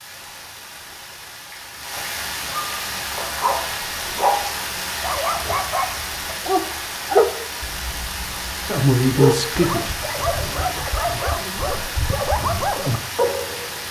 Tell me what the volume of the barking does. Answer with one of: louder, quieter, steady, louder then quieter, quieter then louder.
steady.